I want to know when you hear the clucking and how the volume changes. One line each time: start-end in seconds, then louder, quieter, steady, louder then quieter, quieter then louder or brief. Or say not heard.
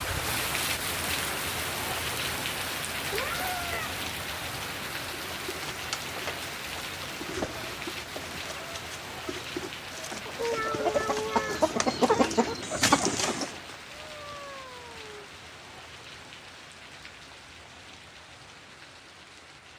5.3-13.6 louder.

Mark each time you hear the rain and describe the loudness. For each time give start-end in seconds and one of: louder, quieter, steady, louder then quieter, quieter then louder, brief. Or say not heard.
0.0-19.7 quieter.